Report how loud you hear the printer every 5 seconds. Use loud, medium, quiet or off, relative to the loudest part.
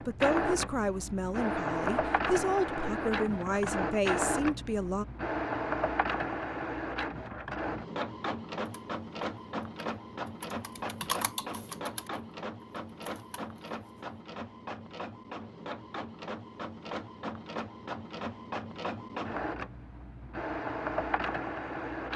loud, loud, medium, medium, loud.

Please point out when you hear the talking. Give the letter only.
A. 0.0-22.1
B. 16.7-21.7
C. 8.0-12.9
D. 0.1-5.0
D.